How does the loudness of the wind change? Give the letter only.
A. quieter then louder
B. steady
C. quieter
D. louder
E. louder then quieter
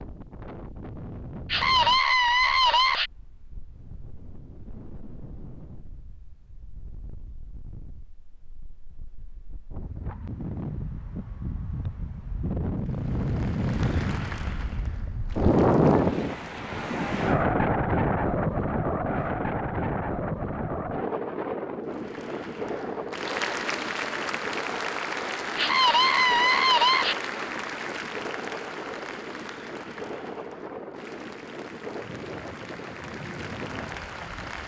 E.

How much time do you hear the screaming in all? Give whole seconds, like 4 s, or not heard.
3 s.